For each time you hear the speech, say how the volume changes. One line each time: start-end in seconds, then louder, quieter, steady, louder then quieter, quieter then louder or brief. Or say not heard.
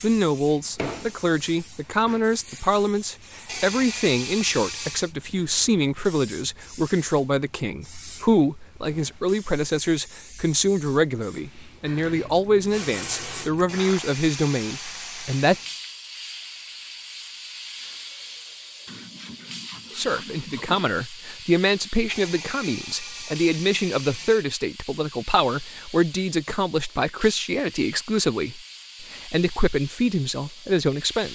0.0-15.6 steady
19.9-31.2 steady.